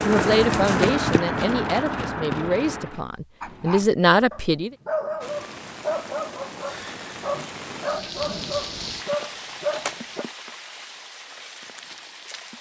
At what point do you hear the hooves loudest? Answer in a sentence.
The loudest moment of the hooves is at 1 second.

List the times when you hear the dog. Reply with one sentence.
The dog can be heard from 3.4 to 10.2 s.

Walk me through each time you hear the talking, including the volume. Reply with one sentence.
You can hear the talking from 0.0 to 4.7 s, getting quieter then louder.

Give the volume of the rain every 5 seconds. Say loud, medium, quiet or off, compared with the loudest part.
off, loud, medium.